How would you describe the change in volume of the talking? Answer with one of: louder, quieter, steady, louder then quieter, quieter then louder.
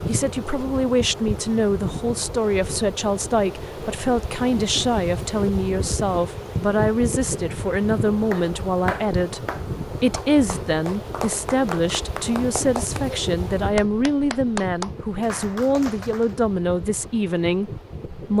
steady.